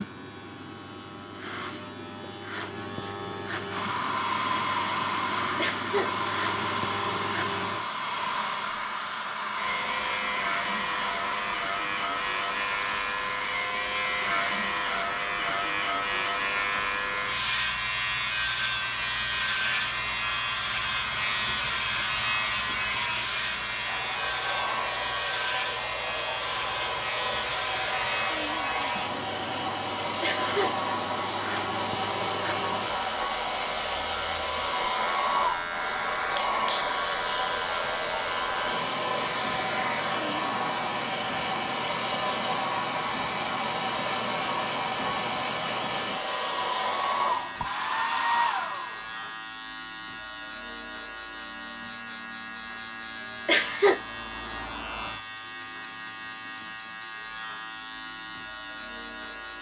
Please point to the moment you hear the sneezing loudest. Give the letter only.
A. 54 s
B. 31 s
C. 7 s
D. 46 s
A.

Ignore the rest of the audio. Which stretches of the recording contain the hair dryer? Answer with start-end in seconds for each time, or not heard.
3.7-49.3.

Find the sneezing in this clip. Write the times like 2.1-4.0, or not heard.
5.5-6.1, 30.2-30.7, 53.5-54.0.